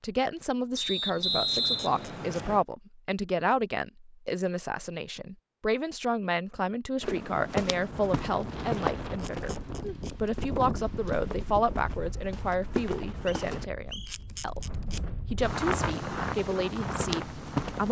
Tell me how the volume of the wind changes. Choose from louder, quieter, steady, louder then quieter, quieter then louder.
quieter then louder.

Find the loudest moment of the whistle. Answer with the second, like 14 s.
2 s.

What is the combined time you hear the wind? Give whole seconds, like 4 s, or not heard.
10 s.